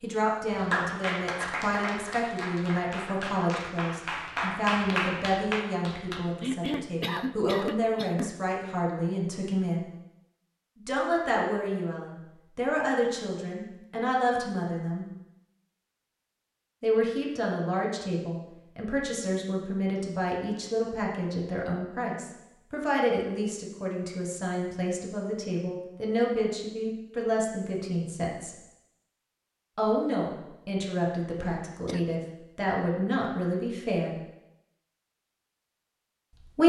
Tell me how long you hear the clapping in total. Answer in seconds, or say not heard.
6 s.